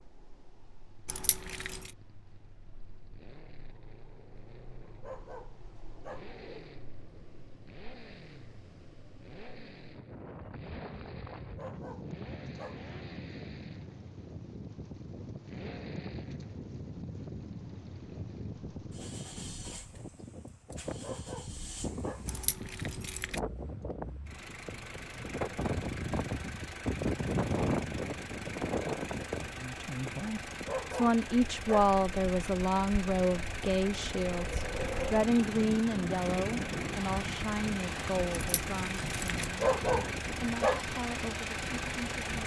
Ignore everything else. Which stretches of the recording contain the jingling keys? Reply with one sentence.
The jingling keys can be heard from 1.1 to 1.9 s, from 22.2 to 23.4 s and from 38.4 to 39.4 s.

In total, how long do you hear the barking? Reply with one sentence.
The barking can be heard for 7 seconds in total.